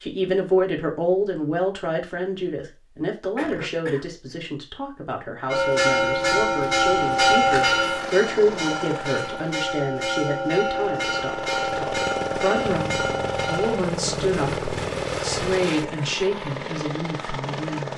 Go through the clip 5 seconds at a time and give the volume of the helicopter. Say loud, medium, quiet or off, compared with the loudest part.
off, medium, loud, loud.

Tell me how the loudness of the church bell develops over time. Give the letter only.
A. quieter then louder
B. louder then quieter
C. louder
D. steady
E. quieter
E.